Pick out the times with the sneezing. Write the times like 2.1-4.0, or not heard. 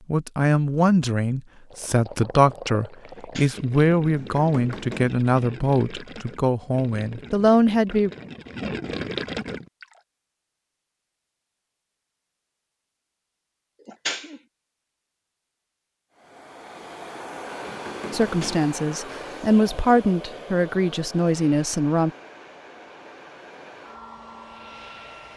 3.1-3.6, 13.8-14.4, 18.2-18.6.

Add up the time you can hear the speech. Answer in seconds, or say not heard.
12 s.